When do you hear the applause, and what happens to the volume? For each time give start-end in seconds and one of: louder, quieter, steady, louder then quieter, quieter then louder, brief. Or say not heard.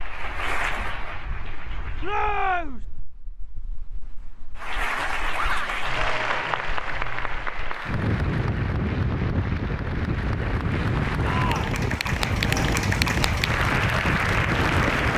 0.0-2.3 brief
4.5-15.1 quieter then louder.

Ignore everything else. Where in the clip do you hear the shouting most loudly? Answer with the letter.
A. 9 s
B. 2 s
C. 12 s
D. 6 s
B.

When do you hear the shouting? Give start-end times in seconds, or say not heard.
2.0-2.9, 5.3-5.8, 11.2-11.8.